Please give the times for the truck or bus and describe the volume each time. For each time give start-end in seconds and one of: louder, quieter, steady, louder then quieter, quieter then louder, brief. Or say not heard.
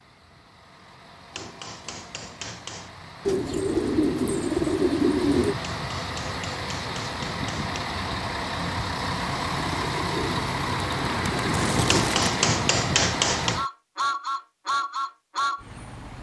0.0-16.1 louder.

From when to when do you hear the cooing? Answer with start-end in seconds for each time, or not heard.
3.2-5.5, 9.6-12.3.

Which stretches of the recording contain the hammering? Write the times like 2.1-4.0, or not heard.
1.3-2.9, 5.6-7.7, 11.8-13.6.